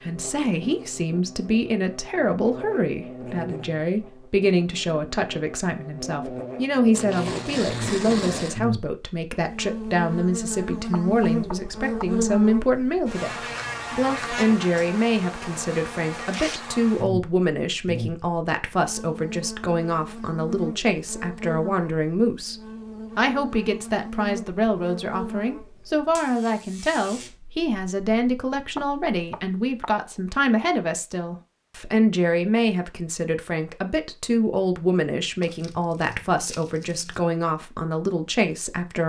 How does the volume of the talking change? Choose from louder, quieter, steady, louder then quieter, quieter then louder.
steady.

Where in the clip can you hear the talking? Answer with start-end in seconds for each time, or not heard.
0.0-39.0.